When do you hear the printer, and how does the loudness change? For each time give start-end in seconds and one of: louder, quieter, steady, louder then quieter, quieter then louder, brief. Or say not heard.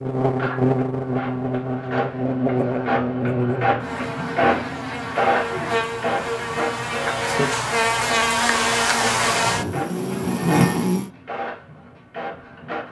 0.2-12.8 louder then quieter.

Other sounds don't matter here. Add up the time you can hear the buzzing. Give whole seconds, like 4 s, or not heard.
11 s.